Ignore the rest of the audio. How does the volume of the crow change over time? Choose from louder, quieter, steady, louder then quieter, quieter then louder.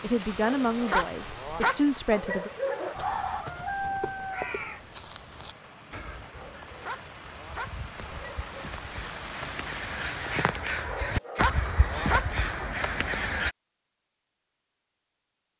quieter then louder.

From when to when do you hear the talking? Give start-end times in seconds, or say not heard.
0.0-2.5.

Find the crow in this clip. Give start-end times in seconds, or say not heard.
3.0-13.6.